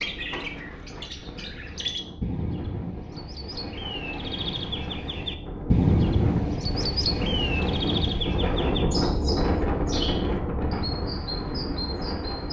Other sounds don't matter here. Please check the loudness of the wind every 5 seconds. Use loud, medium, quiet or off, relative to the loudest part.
quiet, loud, loud.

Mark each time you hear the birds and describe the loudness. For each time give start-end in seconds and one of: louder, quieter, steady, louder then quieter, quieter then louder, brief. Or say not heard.
0.0-12.4 louder then quieter.